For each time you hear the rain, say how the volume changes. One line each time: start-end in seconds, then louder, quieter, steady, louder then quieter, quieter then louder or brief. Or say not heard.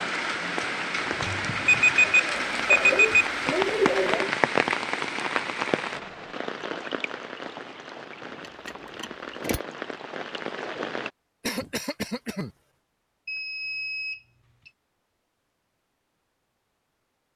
0.0-11.1 quieter.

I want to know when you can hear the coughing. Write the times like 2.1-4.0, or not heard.
2.1-4.3, 11.4-12.5.